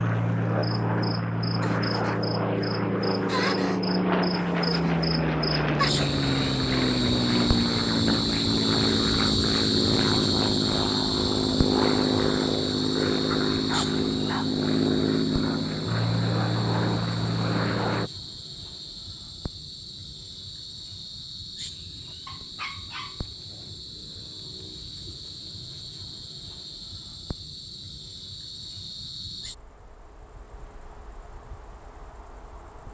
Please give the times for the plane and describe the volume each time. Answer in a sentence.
The plane can be heard from 0.0 to 18.1 s, at a steady volume.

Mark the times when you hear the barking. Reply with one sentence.
You can hear the barking from 13.5 to 14.6 s and from 22.2 to 23.8 s.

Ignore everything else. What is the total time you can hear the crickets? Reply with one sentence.
You can hear the crickets for 33 seconds altogether.